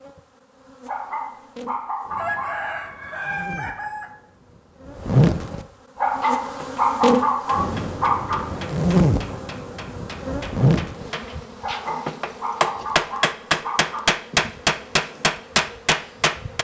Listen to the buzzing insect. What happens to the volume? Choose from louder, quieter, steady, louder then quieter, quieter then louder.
louder then quieter.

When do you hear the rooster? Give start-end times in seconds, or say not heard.
2.1-4.2.